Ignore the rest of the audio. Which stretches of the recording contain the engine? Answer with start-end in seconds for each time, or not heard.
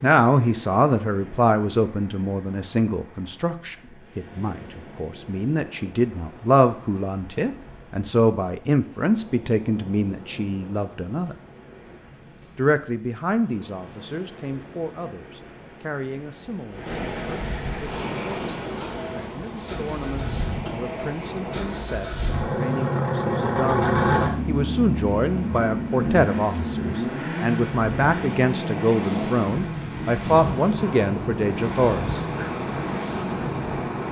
17.9-34.0.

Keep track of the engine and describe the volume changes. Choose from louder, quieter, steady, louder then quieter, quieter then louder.
louder then quieter.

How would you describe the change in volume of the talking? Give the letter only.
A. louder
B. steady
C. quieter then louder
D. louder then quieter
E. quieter
C.